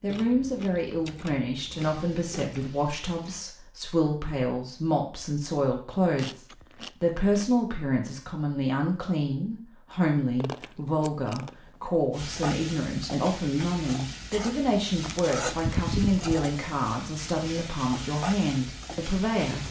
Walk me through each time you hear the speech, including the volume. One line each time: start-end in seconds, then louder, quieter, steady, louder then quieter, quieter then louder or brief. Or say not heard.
0.0-19.6 steady.